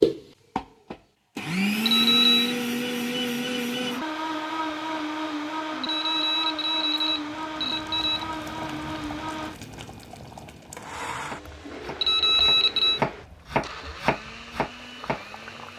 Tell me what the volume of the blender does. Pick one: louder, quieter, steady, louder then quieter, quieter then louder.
quieter.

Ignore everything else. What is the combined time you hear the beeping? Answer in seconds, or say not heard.
4 s.